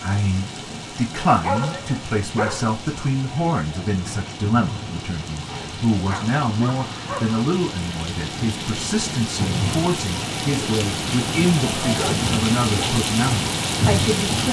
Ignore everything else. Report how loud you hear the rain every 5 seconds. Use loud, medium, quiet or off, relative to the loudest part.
medium, medium, loud.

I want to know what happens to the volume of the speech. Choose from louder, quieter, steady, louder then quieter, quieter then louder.
steady.